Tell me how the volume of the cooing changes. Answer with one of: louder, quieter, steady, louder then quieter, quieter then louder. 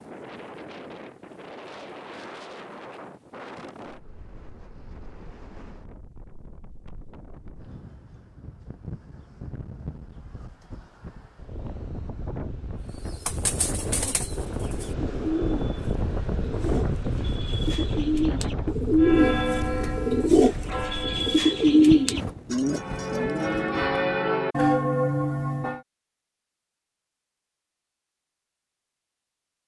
louder.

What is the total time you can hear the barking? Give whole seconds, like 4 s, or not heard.
not heard.